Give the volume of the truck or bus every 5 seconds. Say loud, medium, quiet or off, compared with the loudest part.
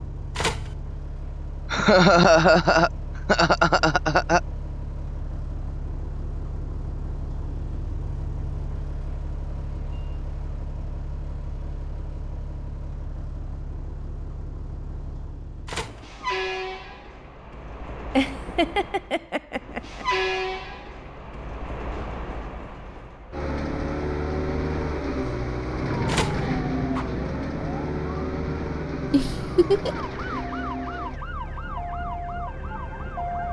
medium, medium, medium, medium, loud, loud, medium.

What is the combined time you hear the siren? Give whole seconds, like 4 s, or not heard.
8 s.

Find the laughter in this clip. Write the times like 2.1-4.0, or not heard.
1.7-4.4, 18.1-20.1, 29.1-30.1.